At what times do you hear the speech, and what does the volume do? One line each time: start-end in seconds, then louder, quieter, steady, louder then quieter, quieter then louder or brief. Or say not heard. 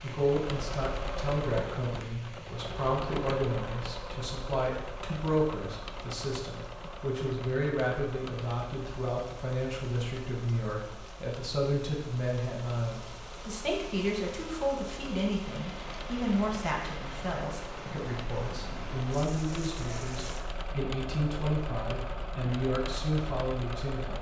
0.0-24.1 steady.